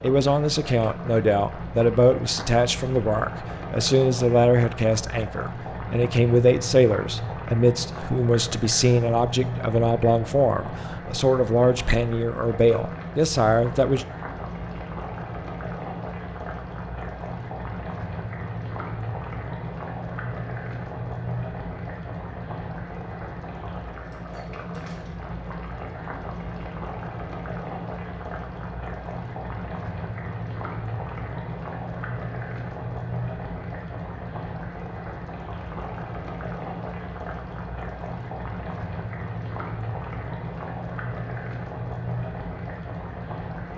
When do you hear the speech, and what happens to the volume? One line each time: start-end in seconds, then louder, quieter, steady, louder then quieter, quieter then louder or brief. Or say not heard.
0.0-14.1 steady.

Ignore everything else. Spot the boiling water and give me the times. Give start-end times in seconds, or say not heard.
0.0-43.7.